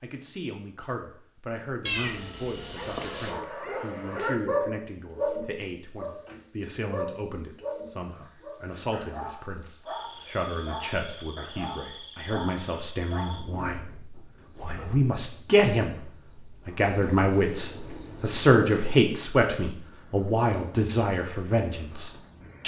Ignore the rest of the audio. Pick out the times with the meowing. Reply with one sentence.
The meowing can be heard from 1.9 to 3.3 s.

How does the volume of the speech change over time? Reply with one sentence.
The volume of the speech goes up.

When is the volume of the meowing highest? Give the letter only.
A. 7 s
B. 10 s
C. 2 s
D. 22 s
C.